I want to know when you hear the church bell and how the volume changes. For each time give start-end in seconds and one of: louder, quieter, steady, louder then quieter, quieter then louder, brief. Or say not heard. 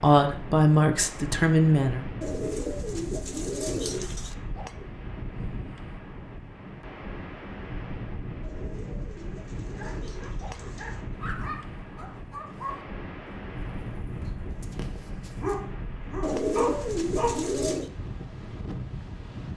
not heard.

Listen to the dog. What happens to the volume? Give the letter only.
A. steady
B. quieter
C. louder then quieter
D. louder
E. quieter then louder
D.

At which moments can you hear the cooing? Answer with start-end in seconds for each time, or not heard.
2.2-4.3, 8.4-11.1, 16.2-17.9.